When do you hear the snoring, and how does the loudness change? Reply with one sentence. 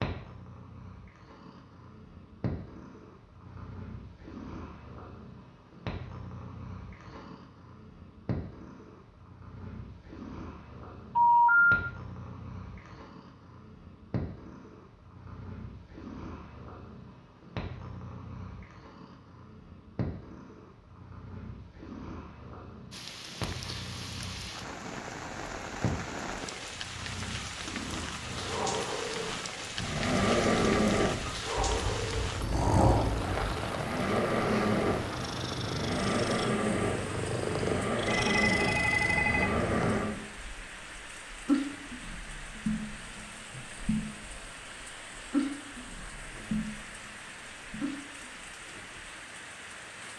The snoring can be heard from 29.8 to 40.2 s, at a steady volume.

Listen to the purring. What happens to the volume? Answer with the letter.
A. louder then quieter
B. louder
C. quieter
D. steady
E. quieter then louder
B.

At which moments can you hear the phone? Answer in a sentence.
The phone can be heard from 11.2 to 11.8 s and from 38.0 to 40.0 s.